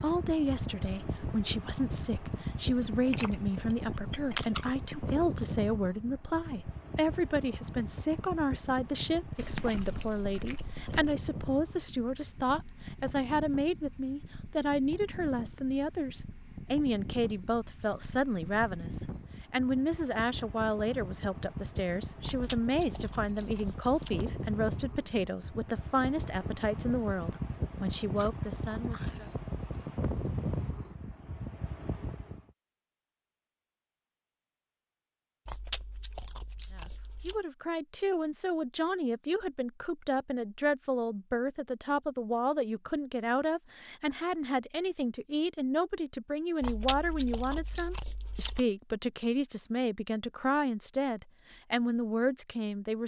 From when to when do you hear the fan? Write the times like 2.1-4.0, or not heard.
0.0-32.4.